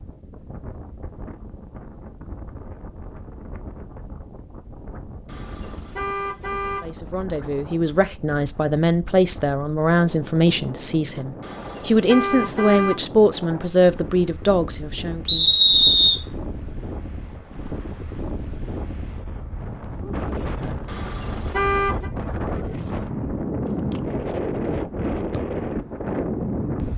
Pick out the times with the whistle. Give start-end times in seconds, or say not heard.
15.2-16.2.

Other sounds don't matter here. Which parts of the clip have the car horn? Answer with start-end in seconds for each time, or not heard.
5.2-6.9, 11.4-13.1, 20.9-22.1.